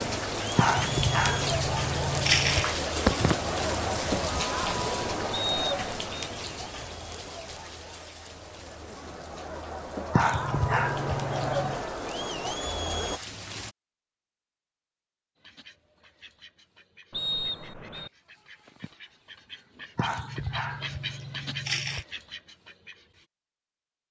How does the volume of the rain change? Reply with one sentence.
The volume of the rain goes down, then up.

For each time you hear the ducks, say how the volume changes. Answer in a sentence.
The ducks can be heard from 15.3 to 23.2 s, getting louder.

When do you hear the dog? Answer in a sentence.
You can hear the dog from 0.6 to 3.4 s, from 10.1 to 11.8 s and from 19.9 to 22.1 s.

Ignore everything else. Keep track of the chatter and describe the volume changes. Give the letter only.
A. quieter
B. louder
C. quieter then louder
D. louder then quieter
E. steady
C.